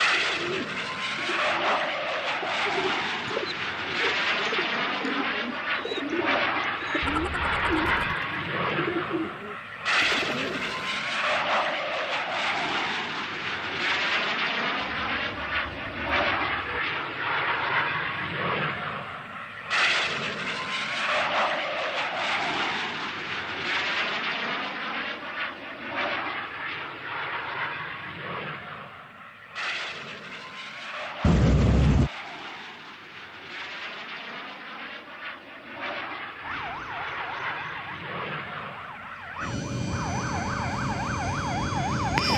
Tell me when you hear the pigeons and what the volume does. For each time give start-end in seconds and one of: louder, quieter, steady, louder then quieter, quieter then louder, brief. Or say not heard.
0.1-10.8 louder.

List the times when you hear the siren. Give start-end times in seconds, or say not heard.
36.4-42.3.